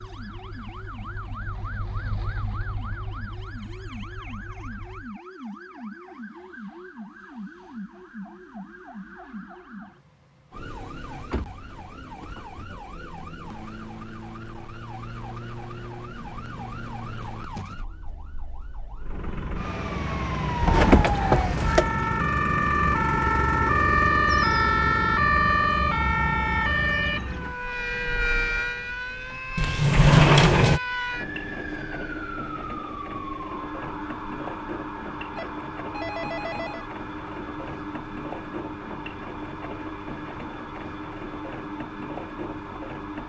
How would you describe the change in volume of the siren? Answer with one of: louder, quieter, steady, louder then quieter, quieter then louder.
louder then quieter.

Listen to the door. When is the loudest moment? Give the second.
30 s.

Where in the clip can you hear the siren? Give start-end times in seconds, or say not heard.
0.0-43.2.